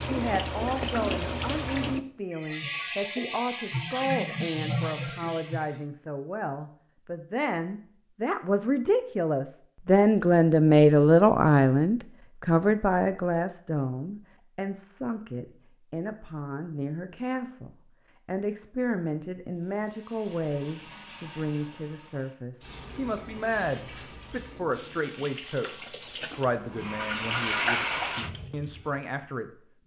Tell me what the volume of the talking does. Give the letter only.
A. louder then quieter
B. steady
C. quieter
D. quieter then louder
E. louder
A.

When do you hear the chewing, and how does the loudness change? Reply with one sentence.
You can't hear the chewing here.